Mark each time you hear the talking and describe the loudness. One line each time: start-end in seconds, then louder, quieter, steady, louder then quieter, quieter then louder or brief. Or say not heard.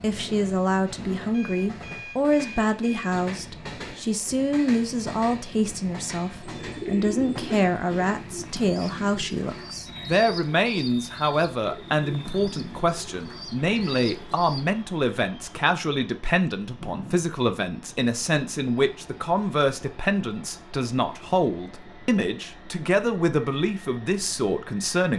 0.0-25.1 steady.